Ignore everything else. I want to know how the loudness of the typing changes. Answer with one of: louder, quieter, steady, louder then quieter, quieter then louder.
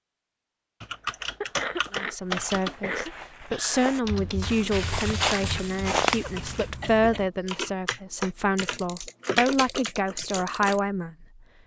quieter then louder.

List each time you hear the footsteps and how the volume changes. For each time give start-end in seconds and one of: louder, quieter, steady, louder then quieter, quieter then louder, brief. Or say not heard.
2.2-6.7 louder.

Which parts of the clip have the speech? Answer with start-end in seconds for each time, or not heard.
1.9-11.2.